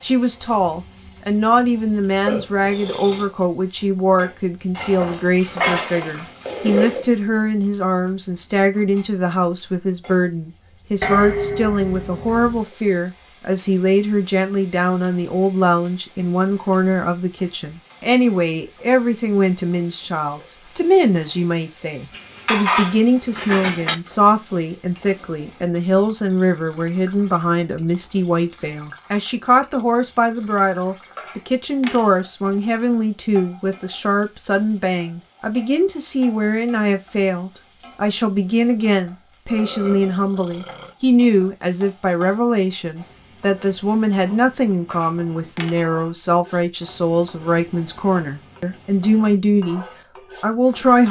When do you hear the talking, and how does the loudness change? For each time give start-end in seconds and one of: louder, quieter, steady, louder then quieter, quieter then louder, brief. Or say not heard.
0.0-51.0 steady.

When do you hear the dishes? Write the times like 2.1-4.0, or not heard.
4.8-7.2, 11.0-12.7, 22.1-23.9, 31.1-32.0, 44.9-45.8.